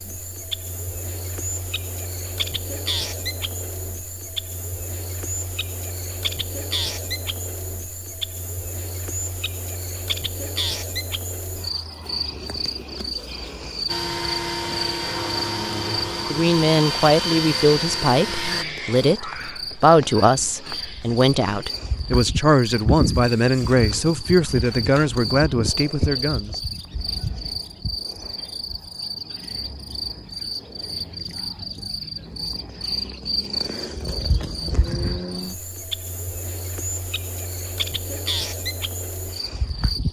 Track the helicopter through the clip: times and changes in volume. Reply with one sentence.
The helicopter can be heard from 13.8 to 18.6 s, at a steady volume.